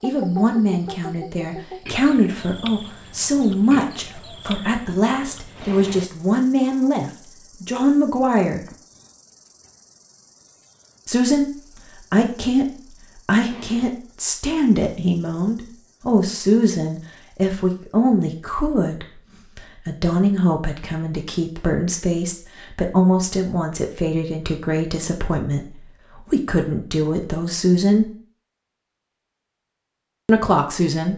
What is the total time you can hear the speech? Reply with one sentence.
You can hear the speech for 26 seconds altogether.